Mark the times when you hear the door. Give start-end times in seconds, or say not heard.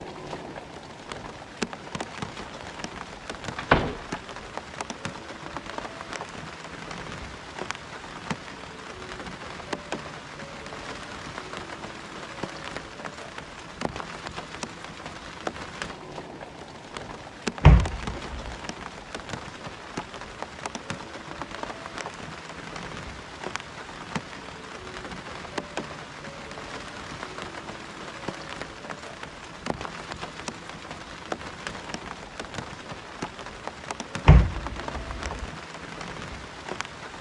3.5-4.0, 17.6-18.5, 34.2-35.5.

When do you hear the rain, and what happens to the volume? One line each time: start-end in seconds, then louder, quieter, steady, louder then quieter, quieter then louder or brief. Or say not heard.
0.0-37.1 steady.